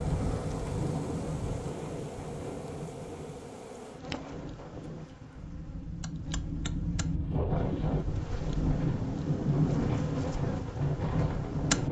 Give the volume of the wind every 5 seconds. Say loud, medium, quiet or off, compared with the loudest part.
medium, loud, loud.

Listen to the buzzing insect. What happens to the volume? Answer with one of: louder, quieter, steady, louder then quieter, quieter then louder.
quieter then louder.